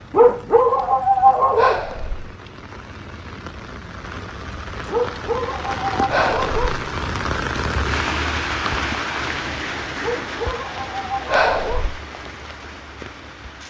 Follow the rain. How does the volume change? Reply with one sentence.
The loudness of the rain goes up, then down.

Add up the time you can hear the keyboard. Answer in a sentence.
The keyboard can't be heard in this clip.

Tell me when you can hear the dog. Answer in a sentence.
The dog can be heard from 0.1 to 1.8 s, from 4.9 to 6.8 s and from 10.0 to 11.9 s.